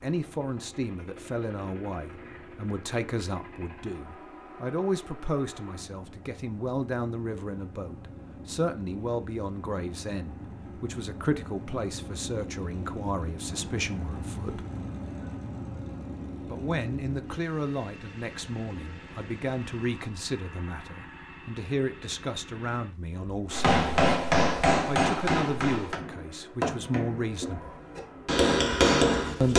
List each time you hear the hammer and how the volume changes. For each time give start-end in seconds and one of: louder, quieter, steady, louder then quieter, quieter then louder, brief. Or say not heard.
23.5-29.5 quieter then louder.